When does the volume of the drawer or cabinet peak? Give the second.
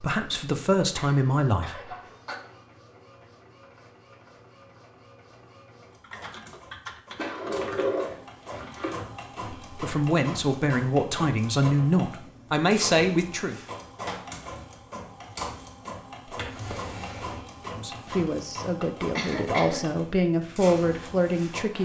8 s.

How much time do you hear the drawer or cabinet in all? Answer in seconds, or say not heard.
3 s.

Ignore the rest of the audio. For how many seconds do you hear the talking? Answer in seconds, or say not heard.
10 s.